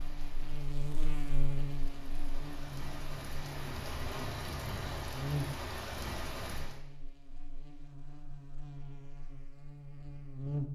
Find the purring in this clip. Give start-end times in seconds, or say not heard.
not heard.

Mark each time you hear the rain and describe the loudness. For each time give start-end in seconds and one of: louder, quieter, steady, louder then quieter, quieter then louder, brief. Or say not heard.
0.0-6.8 louder.